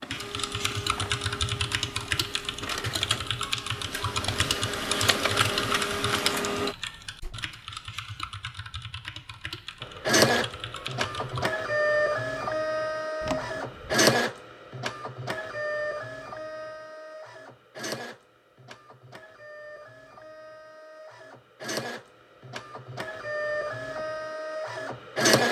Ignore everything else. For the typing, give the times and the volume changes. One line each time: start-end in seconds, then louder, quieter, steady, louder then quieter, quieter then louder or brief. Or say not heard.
0.1-11.4 quieter.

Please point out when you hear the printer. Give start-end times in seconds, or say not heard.
0.0-6.8, 9.8-25.4.